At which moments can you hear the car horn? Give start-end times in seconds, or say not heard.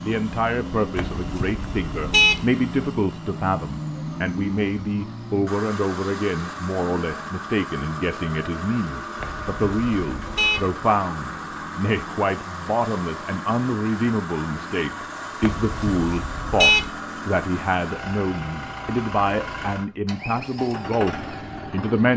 0.9-2.5, 9.2-10.7, 15.4-16.9.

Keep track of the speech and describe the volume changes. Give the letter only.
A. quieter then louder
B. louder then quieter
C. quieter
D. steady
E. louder
D.